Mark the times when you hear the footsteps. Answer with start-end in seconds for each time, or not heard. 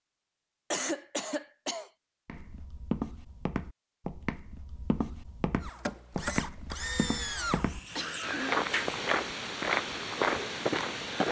2.2-11.2.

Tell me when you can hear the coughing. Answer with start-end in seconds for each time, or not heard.
0.7-1.9, 7.7-8.7.